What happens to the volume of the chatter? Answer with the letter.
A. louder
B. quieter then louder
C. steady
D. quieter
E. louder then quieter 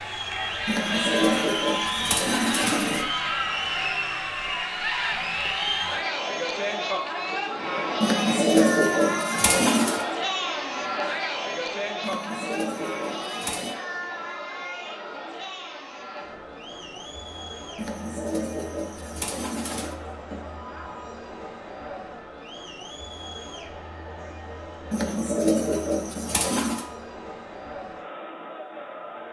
D.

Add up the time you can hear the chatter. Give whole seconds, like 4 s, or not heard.
29 s.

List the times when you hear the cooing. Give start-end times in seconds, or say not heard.
0.7-3.0, 8.0-10.1, 12.0-13.8, 17.8-19.9, 24.9-26.9.